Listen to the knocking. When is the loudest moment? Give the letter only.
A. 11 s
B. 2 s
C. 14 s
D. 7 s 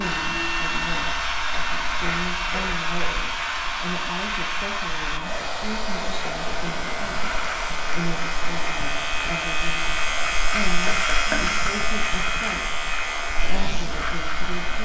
A.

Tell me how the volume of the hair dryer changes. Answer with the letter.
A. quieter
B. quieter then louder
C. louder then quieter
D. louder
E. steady
A.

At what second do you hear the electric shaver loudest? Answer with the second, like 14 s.
11 s.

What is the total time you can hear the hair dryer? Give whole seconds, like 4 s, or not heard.
15 s.